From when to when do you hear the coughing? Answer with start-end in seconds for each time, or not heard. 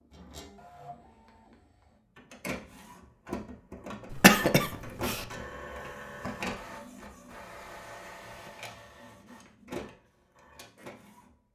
4.1-5.2.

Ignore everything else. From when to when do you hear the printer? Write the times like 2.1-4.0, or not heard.
0.0-11.4.